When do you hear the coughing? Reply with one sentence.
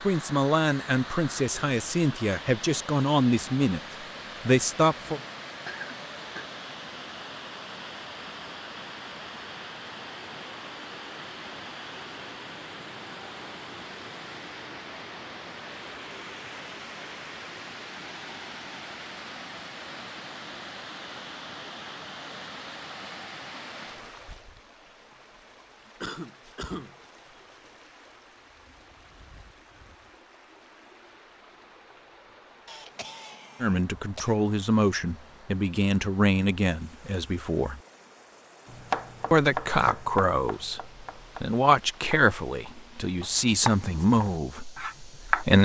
You can hear the coughing from 5.0 to 6.5 s, from 26.0 to 26.9 s and from 32.6 to 34.4 s.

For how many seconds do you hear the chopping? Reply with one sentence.
The chopping can be heard for 7 seconds in total.